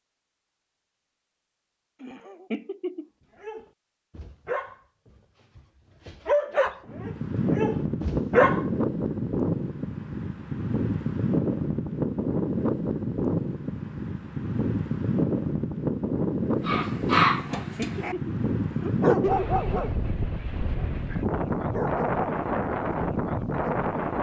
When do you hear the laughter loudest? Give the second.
19 s.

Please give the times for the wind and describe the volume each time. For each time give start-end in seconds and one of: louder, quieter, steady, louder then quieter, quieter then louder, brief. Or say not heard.
6.8-24.1 steady.